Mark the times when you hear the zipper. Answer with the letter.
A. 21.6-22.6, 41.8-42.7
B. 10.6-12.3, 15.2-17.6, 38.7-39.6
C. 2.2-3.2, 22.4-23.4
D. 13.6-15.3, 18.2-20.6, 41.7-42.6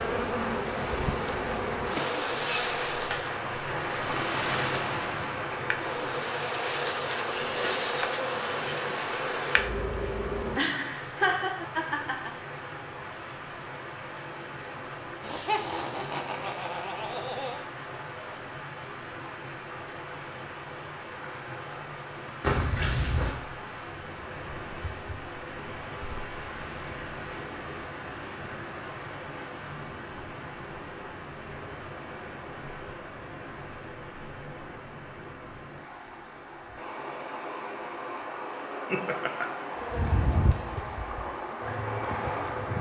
C.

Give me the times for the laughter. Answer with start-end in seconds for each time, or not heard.
10.6-12.3, 15.2-17.6, 38.7-39.6.